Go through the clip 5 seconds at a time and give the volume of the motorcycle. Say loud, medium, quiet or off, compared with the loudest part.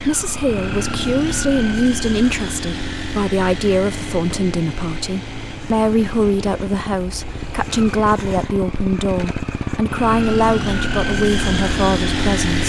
medium, medium, loud.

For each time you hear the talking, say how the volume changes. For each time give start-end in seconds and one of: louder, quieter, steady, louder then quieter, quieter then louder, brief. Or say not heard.
0.0-12.6 steady.